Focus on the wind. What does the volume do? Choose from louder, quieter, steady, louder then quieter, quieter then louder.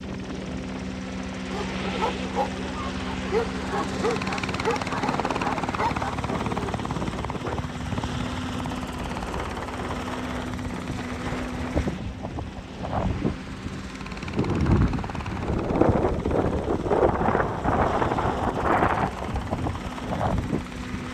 louder.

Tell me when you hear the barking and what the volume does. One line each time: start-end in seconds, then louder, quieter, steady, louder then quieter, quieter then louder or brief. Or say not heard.
1.5-6.8 steady.